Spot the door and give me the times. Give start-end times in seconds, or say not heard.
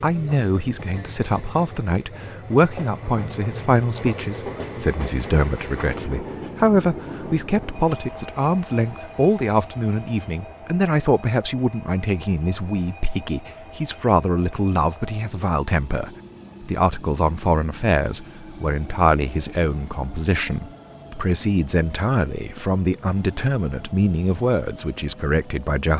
not heard.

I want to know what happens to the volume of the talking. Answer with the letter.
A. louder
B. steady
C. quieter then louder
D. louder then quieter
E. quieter
B.